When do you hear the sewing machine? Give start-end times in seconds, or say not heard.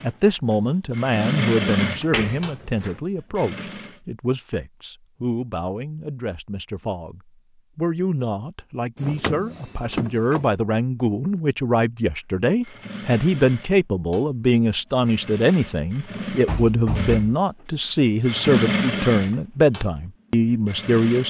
0.0-4.0, 12.6-21.2.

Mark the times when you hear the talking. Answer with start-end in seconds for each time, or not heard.
0.0-21.2.